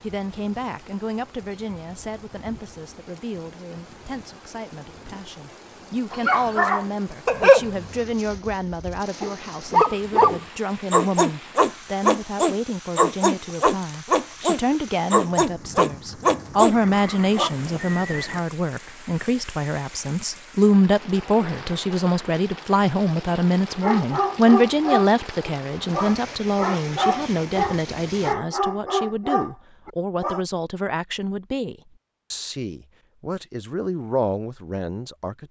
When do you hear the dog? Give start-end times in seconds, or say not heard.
6.1-17.5, 23.8-30.4.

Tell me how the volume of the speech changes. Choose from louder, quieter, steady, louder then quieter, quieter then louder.
louder then quieter.